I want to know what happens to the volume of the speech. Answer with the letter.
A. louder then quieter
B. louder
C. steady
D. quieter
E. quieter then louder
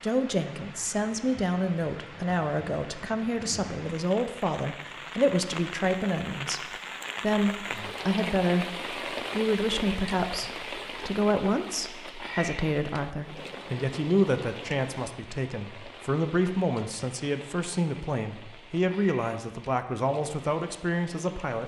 C.